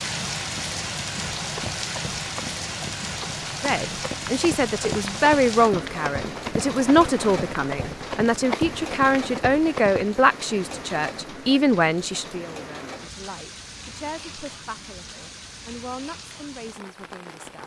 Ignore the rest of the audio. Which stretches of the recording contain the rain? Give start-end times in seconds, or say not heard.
0.0-17.6.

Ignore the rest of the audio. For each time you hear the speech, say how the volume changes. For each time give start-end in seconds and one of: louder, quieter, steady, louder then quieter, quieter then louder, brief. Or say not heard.
3.6-17.6 quieter.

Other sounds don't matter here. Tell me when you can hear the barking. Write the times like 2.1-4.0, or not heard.
not heard.